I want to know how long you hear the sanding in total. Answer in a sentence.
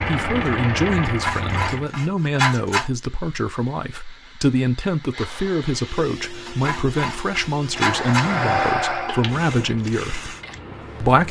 You can hear the sanding for 4 seconds altogether.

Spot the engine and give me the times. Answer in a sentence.
The engine can be heard from 0.0 to 1.9 s and from 7.7 to 11.2 s.